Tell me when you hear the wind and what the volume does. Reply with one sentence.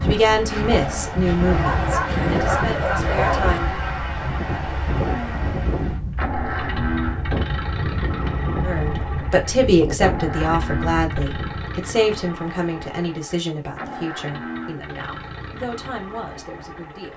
The wind can be heard from 0.0 to 11.7 s, at a steady volume.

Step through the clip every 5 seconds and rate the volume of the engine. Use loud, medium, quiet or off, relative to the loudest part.
loud, loud, medium, medium.